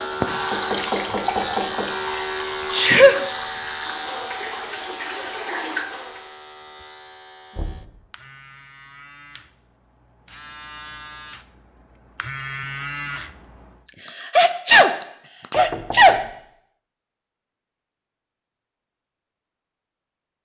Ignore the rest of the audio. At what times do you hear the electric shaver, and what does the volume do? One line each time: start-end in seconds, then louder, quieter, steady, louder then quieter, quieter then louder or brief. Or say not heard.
0.0-13.8 quieter then louder.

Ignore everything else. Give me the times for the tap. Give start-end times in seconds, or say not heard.
0.0-6.3.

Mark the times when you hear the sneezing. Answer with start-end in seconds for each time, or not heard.
2.7-3.2, 14.1-16.2.